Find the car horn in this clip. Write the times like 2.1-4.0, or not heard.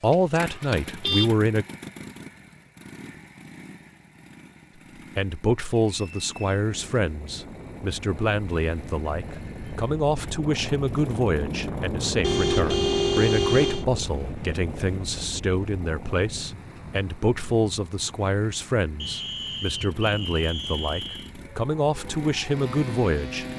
0.1-1.3, 12.2-13.8.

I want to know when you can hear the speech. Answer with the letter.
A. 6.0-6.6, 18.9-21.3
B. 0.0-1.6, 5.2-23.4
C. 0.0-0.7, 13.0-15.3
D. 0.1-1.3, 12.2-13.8
B.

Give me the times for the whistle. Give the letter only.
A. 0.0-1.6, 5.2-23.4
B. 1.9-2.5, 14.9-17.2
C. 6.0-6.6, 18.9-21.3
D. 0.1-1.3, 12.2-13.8
C.